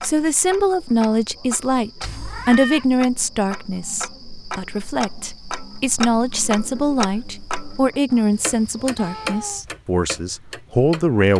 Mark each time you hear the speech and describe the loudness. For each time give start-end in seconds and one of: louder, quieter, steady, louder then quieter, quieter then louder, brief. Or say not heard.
0.0-11.3 steady.